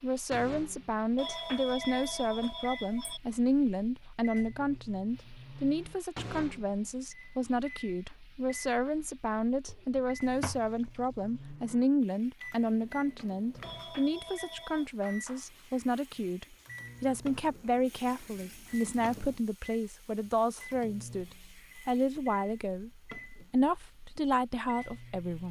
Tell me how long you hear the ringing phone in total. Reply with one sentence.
The ringing phone can be heard for 3 seconds in total.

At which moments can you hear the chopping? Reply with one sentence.
You can't hear the chopping here.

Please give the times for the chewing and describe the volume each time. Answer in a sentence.
The chewing can't be heard in this clip.